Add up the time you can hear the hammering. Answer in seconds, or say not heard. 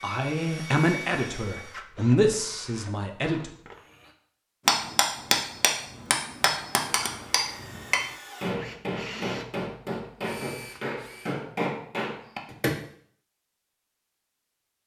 8 s.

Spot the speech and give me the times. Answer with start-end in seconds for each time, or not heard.
0.0-3.5.